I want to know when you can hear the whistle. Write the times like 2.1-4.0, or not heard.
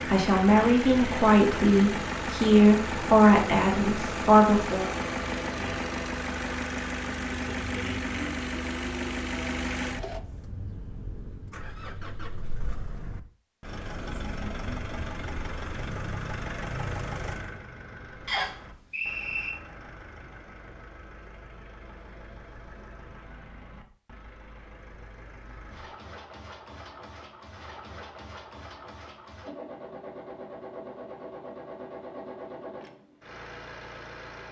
18.2-19.5.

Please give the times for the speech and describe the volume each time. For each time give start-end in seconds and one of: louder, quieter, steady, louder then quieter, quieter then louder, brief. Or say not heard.
0.0-4.9 steady.